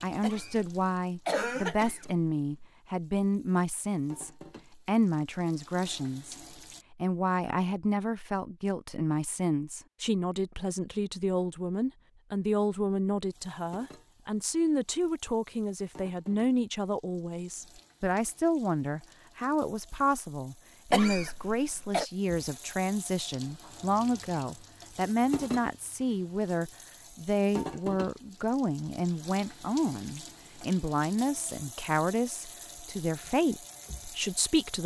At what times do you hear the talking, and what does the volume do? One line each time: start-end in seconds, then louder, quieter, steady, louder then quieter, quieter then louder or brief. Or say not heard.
0.0-34.8 steady.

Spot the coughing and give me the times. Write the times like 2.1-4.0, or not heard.
0.2-2.7, 20.9-22.1.